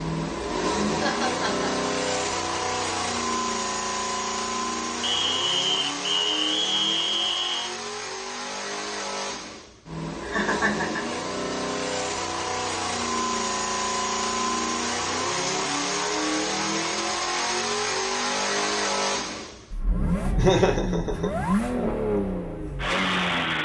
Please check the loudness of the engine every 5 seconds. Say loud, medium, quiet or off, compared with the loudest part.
loud, medium, loud, loud, loud.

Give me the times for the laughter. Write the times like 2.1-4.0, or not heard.
0.9-1.7, 10.2-11.2, 20.4-21.3.